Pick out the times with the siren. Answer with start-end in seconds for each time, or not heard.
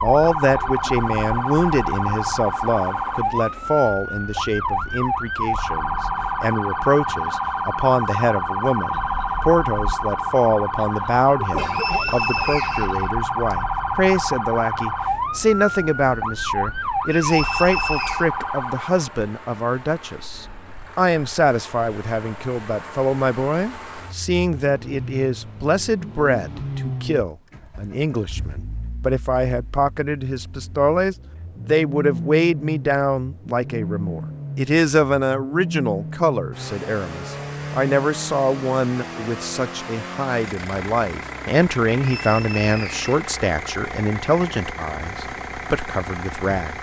0.0-19.1.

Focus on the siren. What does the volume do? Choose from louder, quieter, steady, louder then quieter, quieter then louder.
steady.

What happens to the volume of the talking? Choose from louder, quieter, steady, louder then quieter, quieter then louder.
steady.